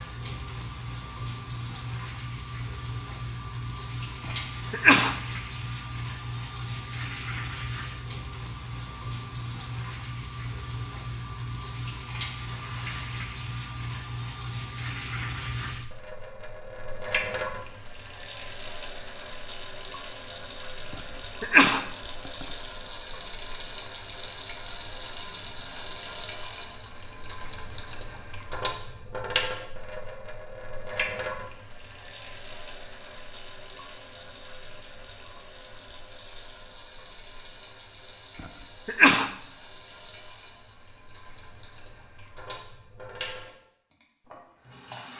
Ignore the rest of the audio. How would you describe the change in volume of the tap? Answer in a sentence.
The volume of the tap goes down.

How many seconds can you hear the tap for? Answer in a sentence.
You can hear the tap for 45 seconds altogether.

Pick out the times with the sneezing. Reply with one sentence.
The sneezing can be heard from 4.2 to 5.2 s, from 20.9 to 22.4 s and from 38.4 to 39.3 s.